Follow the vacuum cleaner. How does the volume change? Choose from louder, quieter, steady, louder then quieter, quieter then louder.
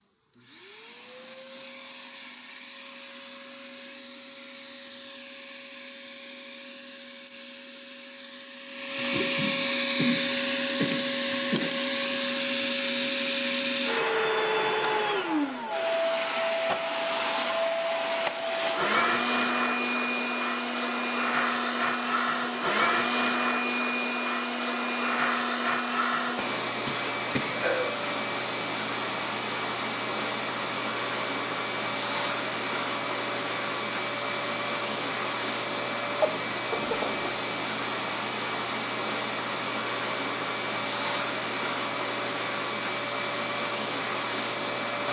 louder.